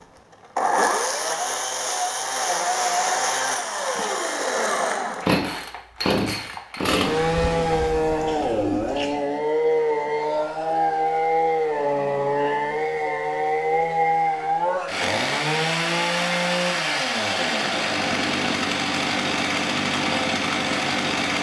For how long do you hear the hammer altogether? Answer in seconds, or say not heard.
not heard.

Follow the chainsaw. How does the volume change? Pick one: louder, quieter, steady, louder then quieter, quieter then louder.
steady.